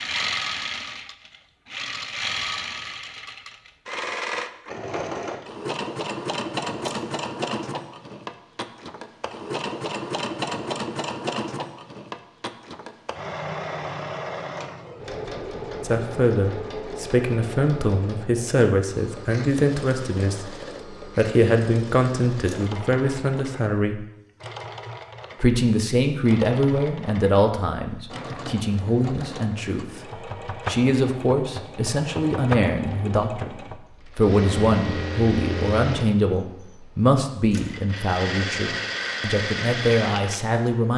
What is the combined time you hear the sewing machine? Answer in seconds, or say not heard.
41 s.